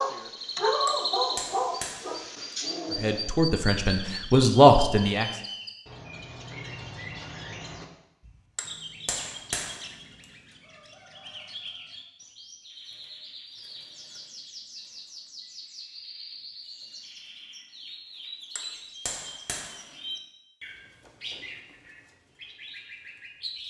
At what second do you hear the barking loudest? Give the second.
1 s.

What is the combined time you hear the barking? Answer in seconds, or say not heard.
3 s.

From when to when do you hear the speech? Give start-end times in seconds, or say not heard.
3.0-5.2.